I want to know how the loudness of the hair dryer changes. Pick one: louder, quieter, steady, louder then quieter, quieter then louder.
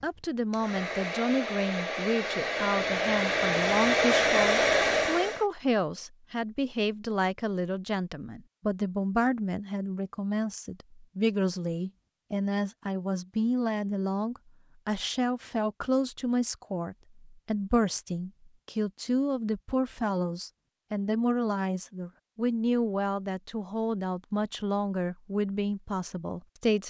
louder.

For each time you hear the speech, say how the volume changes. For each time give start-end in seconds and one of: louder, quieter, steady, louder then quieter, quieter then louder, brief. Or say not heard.
0.0-26.8 steady.